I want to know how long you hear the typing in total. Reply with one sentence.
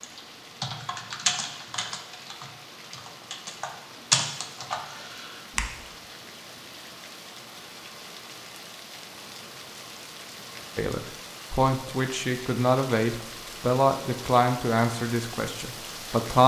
The typing can be heard for 6 seconds in total.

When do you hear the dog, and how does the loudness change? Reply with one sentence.
The dog can't be heard in this clip.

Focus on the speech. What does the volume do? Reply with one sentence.
The volume of the speech goes down.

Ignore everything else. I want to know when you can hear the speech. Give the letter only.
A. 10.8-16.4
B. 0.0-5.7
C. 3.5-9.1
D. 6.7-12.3
A.